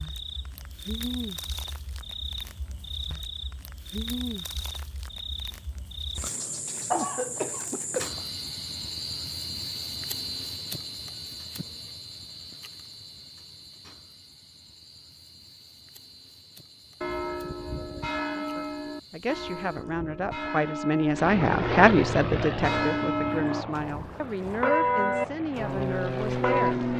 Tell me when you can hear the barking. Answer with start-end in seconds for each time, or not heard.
not heard.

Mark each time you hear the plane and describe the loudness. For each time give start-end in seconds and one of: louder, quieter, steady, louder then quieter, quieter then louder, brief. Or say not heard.
21.1-26.9 quieter then louder.